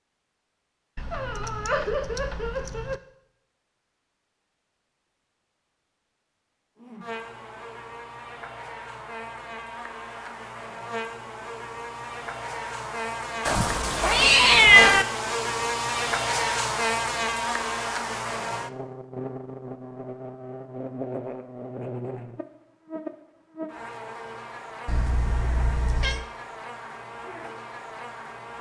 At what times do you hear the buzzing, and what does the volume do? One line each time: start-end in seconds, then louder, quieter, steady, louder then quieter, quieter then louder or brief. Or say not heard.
6.8-28.5 louder then quieter.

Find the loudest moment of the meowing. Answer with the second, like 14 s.
15 s.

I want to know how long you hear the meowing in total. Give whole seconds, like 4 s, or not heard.
5 s.